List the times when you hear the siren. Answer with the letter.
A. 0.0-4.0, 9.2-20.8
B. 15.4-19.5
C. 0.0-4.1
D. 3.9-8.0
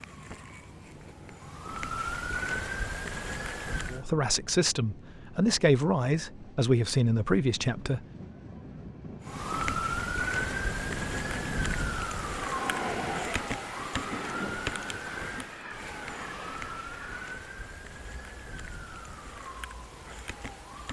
A.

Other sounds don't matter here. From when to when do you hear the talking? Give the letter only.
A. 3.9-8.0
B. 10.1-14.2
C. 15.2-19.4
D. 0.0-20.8
A.